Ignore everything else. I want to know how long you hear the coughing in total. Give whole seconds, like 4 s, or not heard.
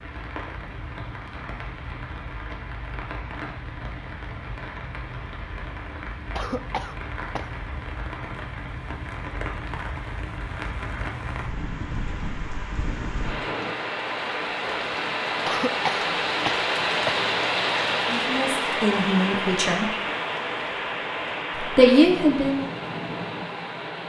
3 s.